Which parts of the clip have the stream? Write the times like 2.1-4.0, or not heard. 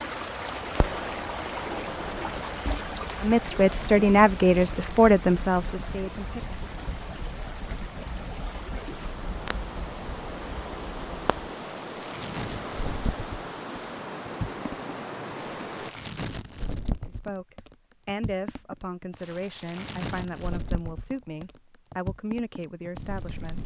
0.0-15.9.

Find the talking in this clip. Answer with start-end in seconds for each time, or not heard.
3.2-6.6, 17.1-23.6.